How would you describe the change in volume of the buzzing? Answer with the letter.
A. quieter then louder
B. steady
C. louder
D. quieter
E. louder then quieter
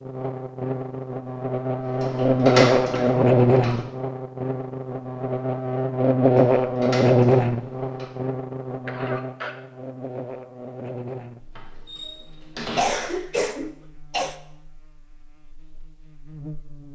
D.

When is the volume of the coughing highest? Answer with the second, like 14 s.
13 s.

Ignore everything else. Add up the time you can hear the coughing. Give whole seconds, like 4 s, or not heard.
3 s.